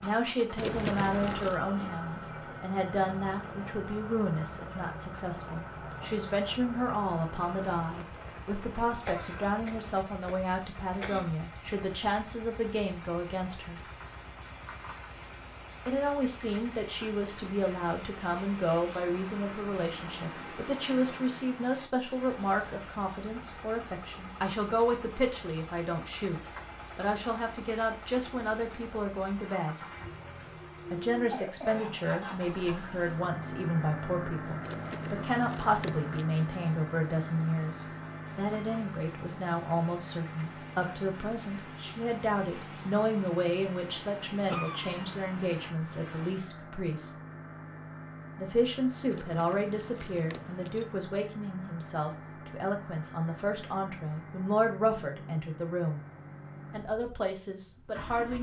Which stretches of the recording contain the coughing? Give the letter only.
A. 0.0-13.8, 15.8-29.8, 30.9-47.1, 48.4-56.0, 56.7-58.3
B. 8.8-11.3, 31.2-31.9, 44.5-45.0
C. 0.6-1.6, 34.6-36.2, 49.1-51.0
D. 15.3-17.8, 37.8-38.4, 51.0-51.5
B.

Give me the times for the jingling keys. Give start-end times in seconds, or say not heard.
0.6-1.6, 34.6-36.2, 49.1-51.0.